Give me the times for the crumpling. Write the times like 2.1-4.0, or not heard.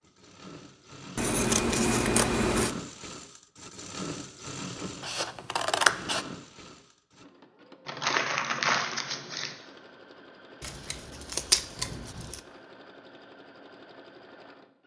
7.8-9.6.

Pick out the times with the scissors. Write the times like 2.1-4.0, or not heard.
1.1-2.8, 5.0-6.2, 10.6-12.4.